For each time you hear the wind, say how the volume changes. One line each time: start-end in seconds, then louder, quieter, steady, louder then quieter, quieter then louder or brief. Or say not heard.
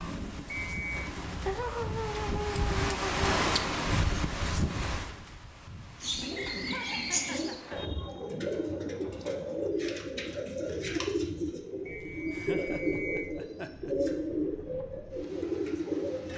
0.0-16.3 quieter.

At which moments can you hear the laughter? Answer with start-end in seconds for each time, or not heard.
1.4-3.3, 6.2-8.2, 12.0-13.9.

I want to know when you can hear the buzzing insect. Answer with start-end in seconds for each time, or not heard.
not heard.